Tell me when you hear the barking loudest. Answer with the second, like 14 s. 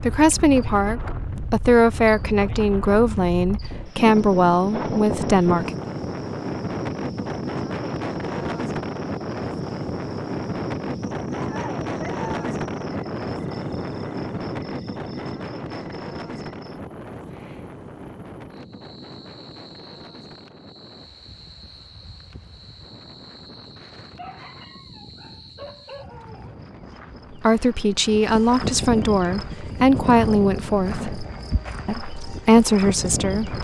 12 s.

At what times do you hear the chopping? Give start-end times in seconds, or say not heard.
not heard.